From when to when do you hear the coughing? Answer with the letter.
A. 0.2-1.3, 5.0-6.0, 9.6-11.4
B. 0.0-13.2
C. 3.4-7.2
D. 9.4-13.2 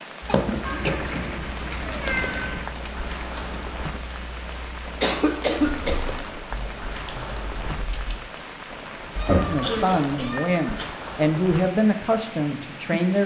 A.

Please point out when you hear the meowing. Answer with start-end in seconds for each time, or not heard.
0.7-2.6, 5.6-6.3, 9.2-10.7.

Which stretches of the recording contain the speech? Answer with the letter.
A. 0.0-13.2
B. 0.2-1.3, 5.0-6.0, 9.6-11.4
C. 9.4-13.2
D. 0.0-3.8
C.